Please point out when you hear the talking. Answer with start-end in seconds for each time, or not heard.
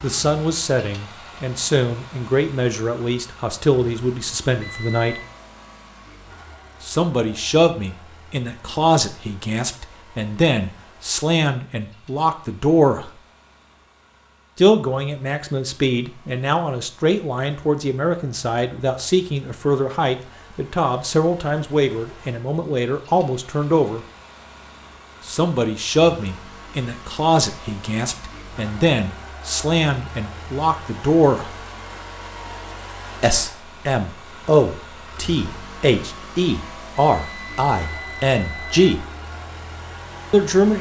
0.0-5.2, 6.8-13.1, 14.6-24.0, 25.2-31.5, 33.2-39.0, 40.3-40.7.